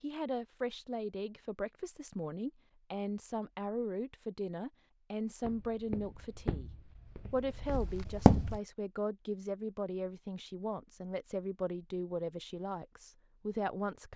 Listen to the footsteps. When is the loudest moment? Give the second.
8 s.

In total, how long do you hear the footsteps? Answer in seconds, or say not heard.
3 s.